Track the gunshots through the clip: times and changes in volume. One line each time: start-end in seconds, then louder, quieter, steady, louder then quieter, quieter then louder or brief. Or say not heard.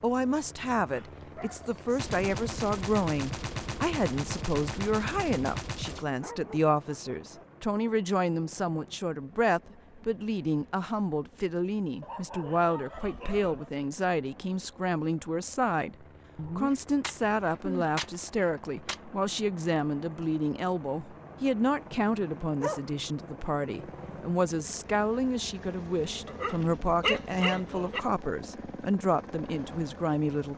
1.9-6.1 steady
17.0-19.0 brief.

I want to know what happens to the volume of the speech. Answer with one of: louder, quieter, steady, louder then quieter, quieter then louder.
steady.